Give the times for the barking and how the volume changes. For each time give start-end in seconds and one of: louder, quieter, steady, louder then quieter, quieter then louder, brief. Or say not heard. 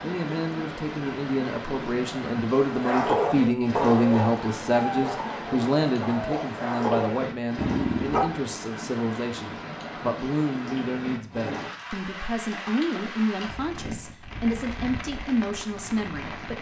2.6-8.3 quieter then louder.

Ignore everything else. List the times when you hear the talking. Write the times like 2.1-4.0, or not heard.
0.0-16.5.